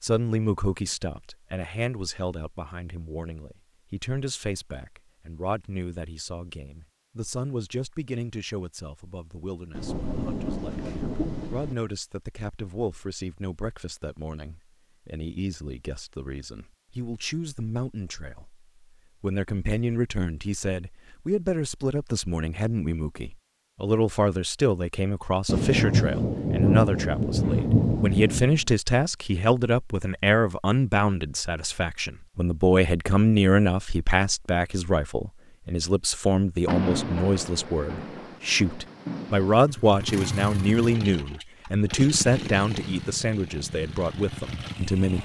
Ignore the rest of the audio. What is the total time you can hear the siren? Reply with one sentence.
The siren can't be heard in this clip.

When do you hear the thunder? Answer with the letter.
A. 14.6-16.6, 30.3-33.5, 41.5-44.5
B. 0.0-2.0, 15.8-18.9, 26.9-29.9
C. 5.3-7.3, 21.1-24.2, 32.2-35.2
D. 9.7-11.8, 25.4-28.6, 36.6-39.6
D.